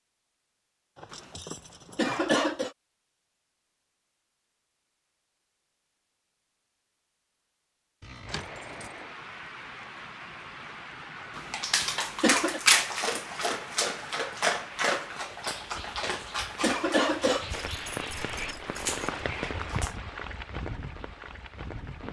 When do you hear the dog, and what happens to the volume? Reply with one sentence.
The dog can be heard from 11.5 to 19.9 s, getting quieter.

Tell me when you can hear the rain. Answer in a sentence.
You can hear the rain from 8.2 to 22.0 s.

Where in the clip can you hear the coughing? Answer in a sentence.
You can hear the coughing from 1.9 to 2.7 s, from 11.3 to 12.6 s and from 16.6 to 17.5 s.